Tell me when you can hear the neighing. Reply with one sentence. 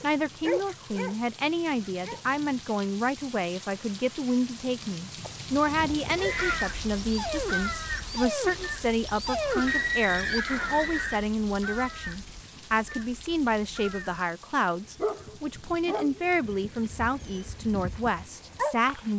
You can hear the neighing from 5.2 to 6.7 s and from 9.7 to 11.2 s.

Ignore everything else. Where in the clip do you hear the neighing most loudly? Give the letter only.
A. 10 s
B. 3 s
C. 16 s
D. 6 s
A.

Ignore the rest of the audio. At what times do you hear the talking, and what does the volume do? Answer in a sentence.
The talking can be heard from 0.0 to 19.1 s, at a steady volume.